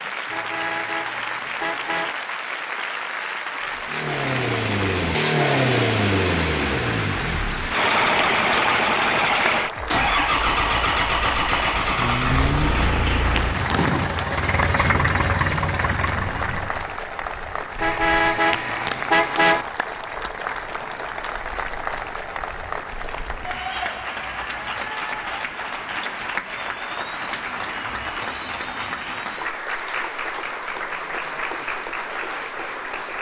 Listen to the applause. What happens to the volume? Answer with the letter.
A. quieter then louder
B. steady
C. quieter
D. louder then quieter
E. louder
B.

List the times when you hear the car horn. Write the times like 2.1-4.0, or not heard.
0.2-2.1, 17.8-19.6.